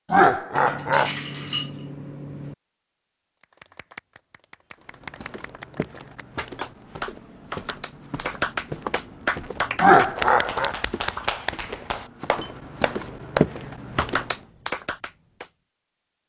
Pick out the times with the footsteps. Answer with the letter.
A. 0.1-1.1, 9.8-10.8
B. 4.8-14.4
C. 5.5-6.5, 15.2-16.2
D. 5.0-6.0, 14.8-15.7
B.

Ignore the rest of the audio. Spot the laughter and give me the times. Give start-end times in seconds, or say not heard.
0.1-1.1, 9.8-10.8.